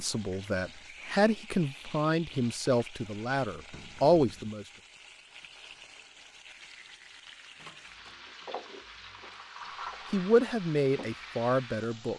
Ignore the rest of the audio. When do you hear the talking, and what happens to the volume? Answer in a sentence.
The talking can be heard from 0.0 to 4.7 s, getting louder; and briefly from 10.1 to 12.1 s.